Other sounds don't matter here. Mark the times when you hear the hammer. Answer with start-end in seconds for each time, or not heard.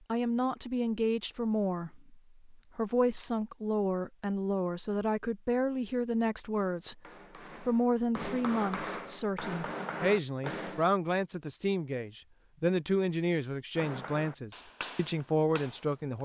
6.8-10.8, 13.8-16.1.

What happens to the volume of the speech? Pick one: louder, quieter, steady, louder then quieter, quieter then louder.
steady.